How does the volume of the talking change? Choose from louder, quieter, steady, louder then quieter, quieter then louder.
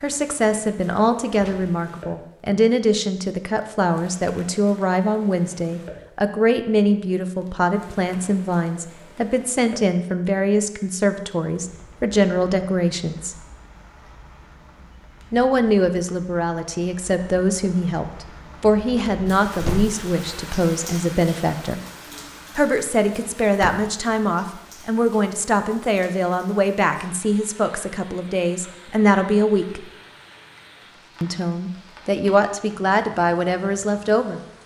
steady.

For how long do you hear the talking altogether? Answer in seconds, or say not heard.
30 s.